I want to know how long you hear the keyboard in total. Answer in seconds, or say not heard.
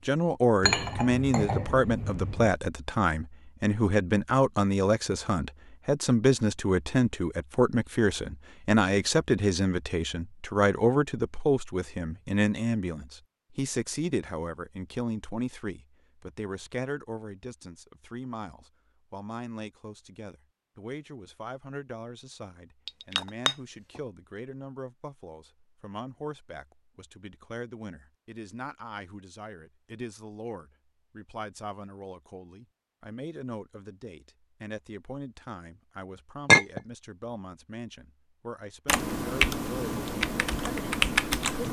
3 s.